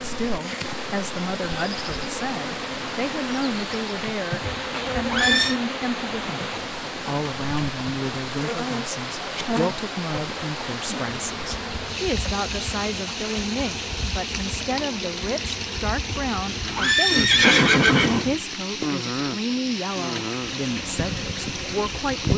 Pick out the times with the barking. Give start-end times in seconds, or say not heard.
not heard.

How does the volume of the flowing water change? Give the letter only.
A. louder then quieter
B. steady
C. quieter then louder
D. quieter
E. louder
B.